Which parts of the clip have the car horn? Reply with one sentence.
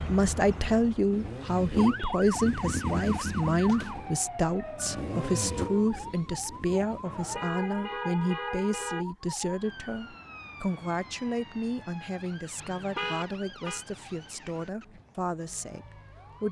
The car horn can be heard from 1.1 to 2.2 s, from 7.0 to 9.1 s and from 12.6 to 13.8 s.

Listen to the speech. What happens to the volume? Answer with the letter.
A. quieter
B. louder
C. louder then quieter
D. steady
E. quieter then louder
A.